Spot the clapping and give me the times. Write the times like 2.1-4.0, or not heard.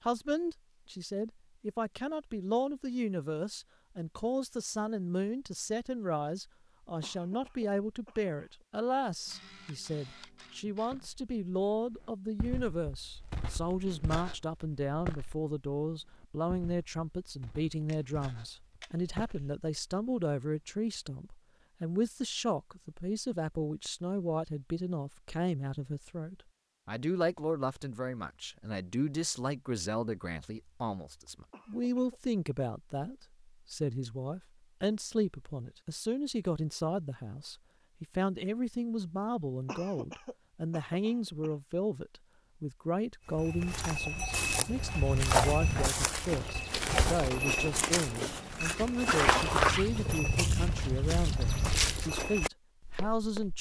not heard.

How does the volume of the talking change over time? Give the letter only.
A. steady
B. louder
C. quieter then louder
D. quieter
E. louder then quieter
A.